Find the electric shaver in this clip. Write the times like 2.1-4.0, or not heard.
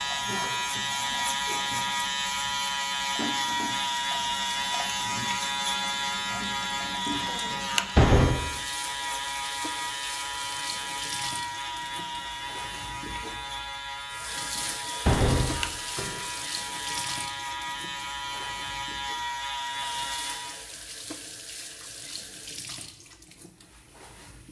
0.0-20.7.